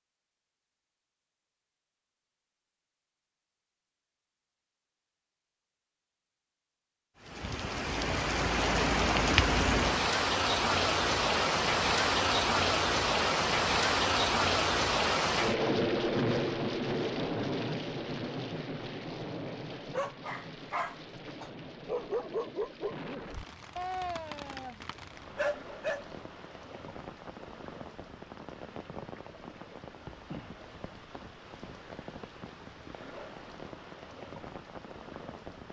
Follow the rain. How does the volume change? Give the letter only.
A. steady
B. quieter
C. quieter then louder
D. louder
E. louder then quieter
B.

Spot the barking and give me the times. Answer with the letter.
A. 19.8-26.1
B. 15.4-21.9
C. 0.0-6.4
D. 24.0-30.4
A.